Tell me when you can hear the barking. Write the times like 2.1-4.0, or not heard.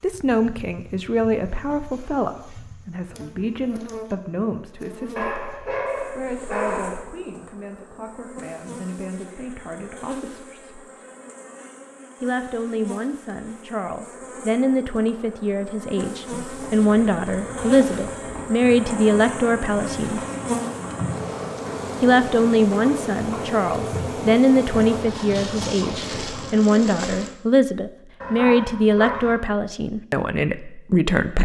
5.2-7.0, 28.2-29.4.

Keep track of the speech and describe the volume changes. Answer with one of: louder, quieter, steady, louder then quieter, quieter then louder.
quieter then louder.